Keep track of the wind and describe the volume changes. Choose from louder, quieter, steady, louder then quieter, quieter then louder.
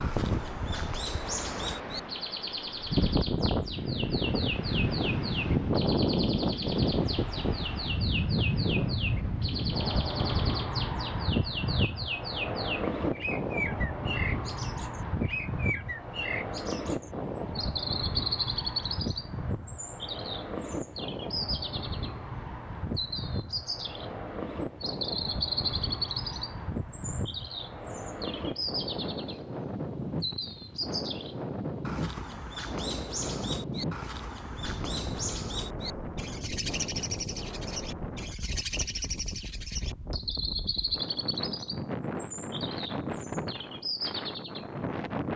quieter.